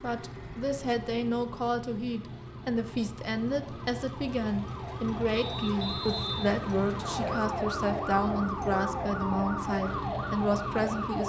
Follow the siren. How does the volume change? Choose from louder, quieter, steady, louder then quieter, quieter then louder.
louder.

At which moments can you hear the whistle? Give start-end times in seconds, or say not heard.
5.3-7.3.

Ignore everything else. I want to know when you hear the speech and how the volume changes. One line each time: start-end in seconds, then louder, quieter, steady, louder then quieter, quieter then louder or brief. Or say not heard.
0.0-11.2 steady.